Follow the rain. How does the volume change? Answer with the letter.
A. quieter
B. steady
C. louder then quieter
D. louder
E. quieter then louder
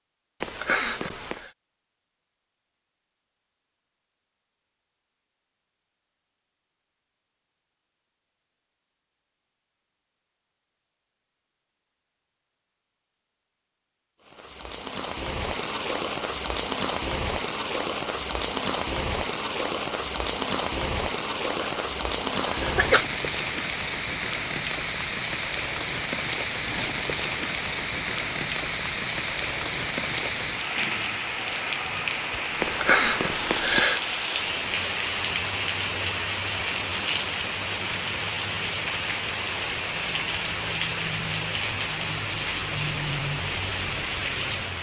B.